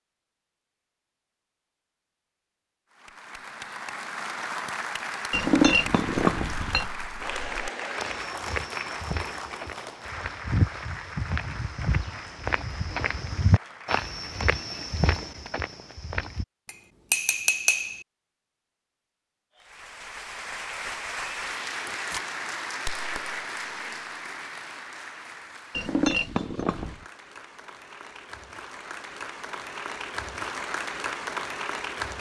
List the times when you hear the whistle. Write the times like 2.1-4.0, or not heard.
not heard.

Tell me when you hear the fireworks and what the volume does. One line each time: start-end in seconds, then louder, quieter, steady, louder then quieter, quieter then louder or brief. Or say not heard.
not heard.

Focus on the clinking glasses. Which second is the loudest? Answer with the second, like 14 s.
6 s.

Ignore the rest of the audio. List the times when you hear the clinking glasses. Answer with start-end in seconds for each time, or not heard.
5.3-6.8, 16.6-18.1, 25.7-27.1.